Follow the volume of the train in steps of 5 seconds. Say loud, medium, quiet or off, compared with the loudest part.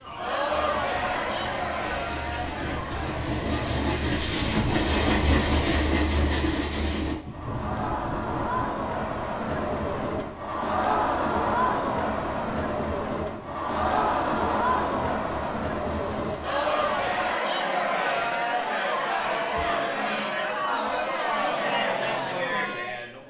loud, loud, quiet, quiet, off.